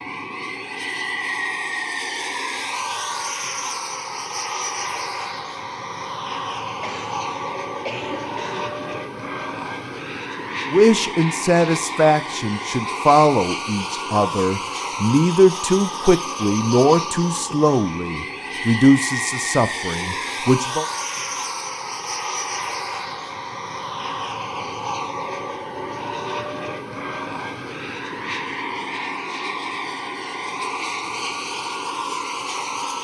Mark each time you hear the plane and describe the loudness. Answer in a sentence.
You can hear the plane from 0.0 to 32.9 s, at a steady volume.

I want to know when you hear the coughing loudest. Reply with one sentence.
The loudest moment of the coughing is at 8 seconds.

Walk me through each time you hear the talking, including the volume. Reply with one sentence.
The talking can be heard from 10.7 to 20.9 s, at a steady volume.